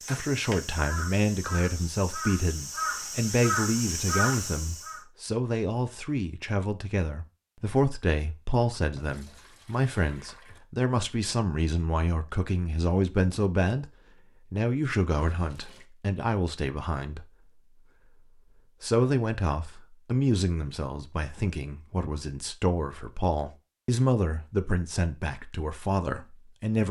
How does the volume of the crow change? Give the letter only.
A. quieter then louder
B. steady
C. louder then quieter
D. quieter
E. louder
E.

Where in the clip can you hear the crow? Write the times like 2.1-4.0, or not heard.
0.0-5.0.